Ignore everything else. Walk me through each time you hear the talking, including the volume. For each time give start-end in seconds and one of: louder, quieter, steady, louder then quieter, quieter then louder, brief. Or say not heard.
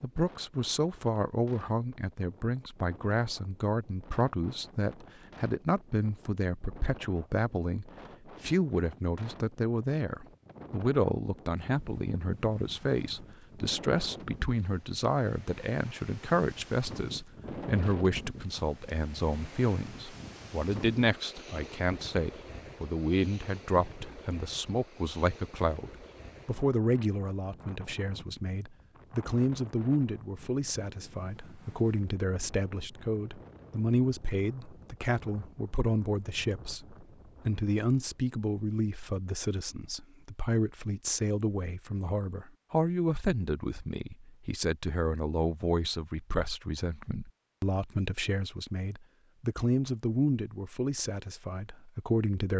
0.0-52.5 steady.